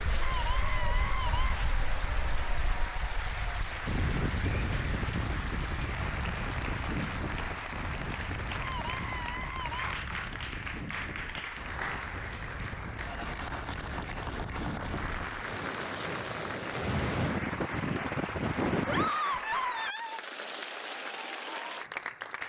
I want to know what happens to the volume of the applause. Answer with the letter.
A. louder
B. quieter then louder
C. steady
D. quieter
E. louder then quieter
C.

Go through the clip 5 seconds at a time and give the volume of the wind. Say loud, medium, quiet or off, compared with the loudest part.
medium, medium, medium, loud, off.